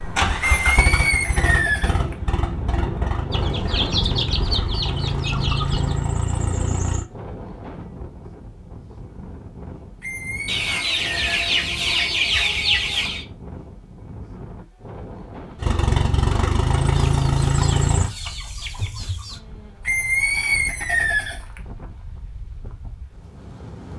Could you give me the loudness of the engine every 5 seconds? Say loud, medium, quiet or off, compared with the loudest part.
medium, medium, off, loud, off.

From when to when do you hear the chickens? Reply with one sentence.
You can hear the chickens from 3.3 to 6.0 s, from 10.4 to 13.2 s and from 16.9 to 19.4 s.